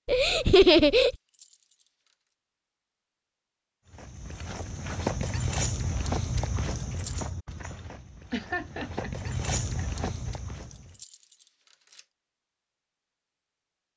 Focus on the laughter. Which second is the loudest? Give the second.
1 s.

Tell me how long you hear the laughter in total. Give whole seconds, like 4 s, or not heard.
3 s.